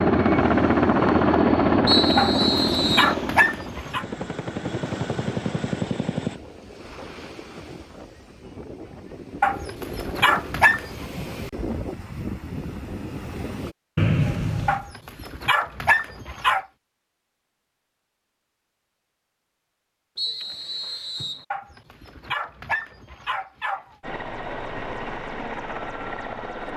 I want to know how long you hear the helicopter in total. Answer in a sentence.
You can hear the helicopter for 9 seconds altogether.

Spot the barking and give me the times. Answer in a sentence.
You can hear the barking from 2.1 to 4.0 s, from 9.4 to 11.1 s, from 14.7 to 16.6 s and from 21.5 to 23.9 s.